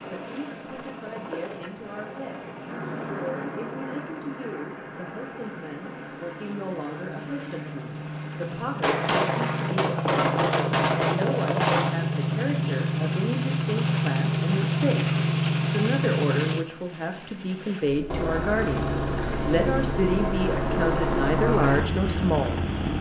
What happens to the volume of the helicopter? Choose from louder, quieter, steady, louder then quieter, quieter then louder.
louder.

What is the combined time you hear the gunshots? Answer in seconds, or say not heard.
3 s.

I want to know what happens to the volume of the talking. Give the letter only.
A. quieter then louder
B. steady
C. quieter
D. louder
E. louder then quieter
D.